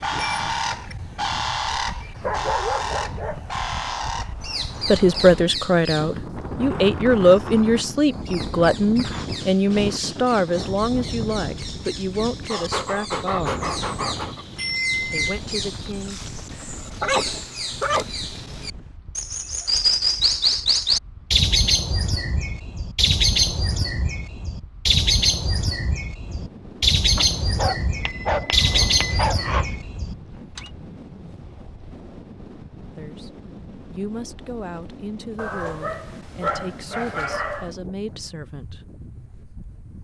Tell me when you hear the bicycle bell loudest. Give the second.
15 s.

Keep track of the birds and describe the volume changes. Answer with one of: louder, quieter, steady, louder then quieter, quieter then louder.
quieter then louder.